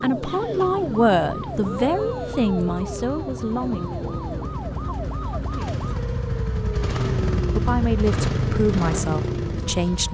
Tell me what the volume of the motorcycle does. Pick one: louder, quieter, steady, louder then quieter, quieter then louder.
louder.